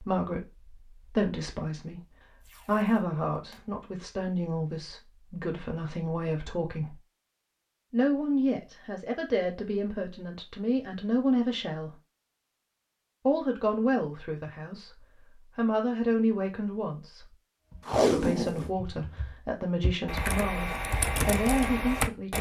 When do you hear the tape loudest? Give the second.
18 s.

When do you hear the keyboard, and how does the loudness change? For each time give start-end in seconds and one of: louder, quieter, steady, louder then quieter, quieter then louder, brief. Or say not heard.
17.7-22.3 louder.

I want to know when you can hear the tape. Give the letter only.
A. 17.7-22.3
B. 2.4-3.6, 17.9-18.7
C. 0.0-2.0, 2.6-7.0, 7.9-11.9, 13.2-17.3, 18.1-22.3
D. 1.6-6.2
B.